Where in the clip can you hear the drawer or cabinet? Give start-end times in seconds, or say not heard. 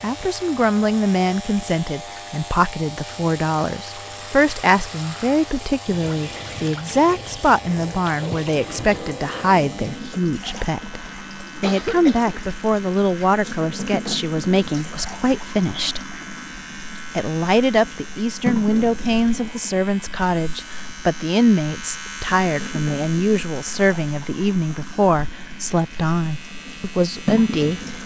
not heard.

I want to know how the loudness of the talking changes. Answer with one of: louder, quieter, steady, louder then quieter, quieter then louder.
steady.